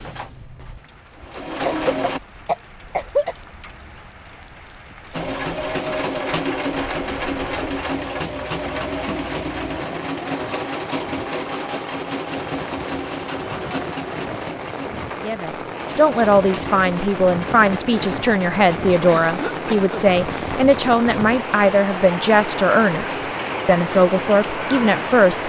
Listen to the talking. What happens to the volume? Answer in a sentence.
The volume of the talking stays about the same.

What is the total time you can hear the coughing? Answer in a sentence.
The coughing can be heard for 3 seconds in total.